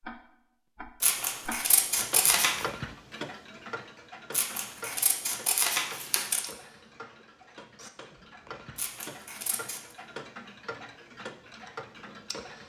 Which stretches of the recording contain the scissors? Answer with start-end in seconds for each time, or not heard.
1.0-2.6, 4.3-6.5, 8.8-9.9.